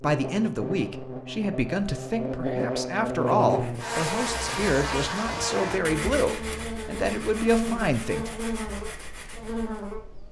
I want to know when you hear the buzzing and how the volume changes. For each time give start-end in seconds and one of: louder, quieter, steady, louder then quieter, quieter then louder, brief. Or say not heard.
0.0-10.2 louder then quieter.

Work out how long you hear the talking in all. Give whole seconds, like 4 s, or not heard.
8 s.